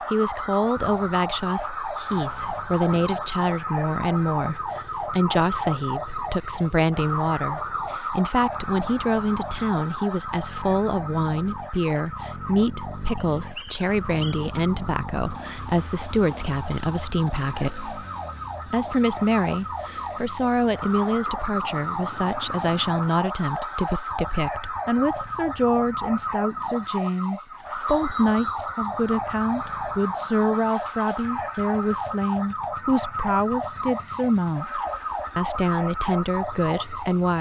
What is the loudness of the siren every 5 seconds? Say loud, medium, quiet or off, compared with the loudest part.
loud, loud, medium, medium, loud, loud, loud, loud.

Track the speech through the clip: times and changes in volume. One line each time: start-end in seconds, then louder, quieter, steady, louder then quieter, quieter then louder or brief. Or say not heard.
0.1-17.9 steady
18.6-37.3 steady.